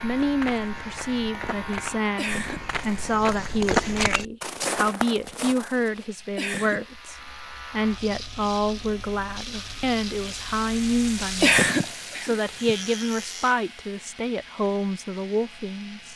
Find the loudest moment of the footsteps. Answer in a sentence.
The volume of the footsteps peaks at 4 seconds.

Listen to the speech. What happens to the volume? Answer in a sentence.
The volume of the speech stays about the same.